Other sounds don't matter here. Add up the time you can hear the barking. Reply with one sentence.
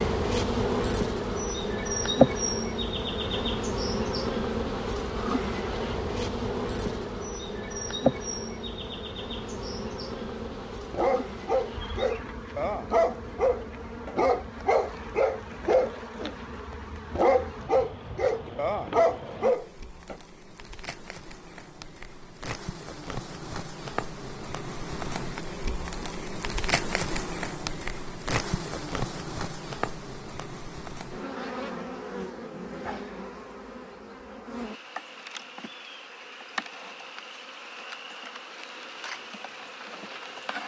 The barking can be heard for 9 seconds in total.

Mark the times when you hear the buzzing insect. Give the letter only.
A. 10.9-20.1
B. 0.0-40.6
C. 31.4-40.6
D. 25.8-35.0
B.